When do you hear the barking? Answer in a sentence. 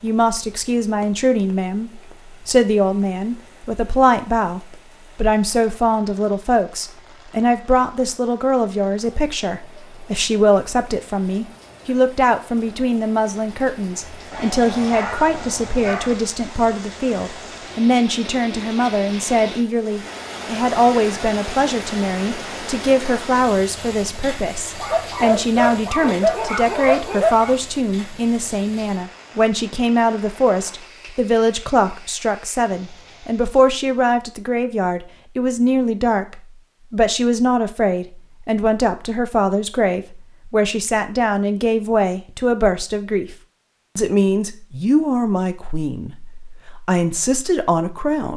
You can hear the barking from 14.3 to 16.1 s and from 24.8 to 27.6 s.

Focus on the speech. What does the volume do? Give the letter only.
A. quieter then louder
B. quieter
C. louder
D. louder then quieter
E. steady
E.